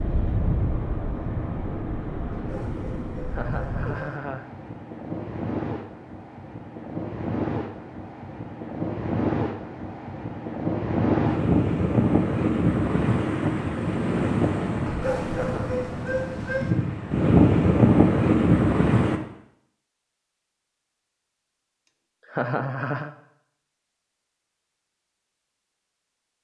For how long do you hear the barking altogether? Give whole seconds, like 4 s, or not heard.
4 s.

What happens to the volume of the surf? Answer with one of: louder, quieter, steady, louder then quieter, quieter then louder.
louder.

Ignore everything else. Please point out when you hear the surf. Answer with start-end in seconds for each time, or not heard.
0.0-19.2.